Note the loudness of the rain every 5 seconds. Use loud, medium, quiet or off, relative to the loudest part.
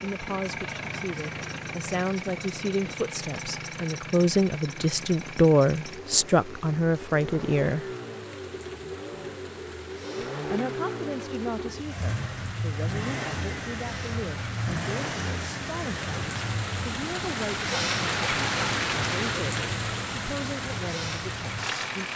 quiet, quiet, quiet, loud, medium.